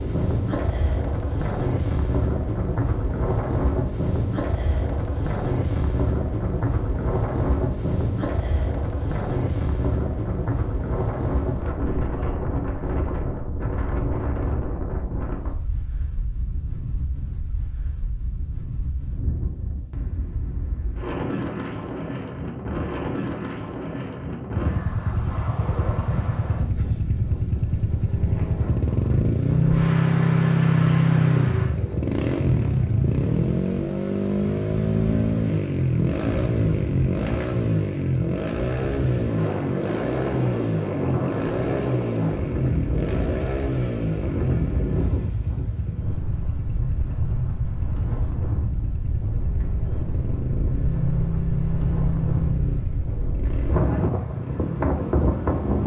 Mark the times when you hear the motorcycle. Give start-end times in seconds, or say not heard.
24.5-55.8.